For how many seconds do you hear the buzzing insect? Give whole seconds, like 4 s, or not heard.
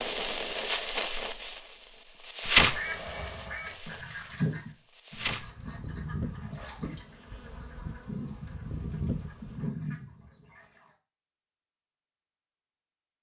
10 s.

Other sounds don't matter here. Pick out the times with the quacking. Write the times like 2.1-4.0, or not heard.
2.6-10.8.